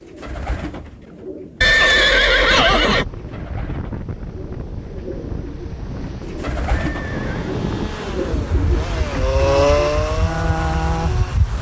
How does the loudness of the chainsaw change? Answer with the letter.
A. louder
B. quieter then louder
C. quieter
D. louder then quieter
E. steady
D.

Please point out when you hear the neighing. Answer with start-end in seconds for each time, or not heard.
1.6-3.0, 6.7-7.6.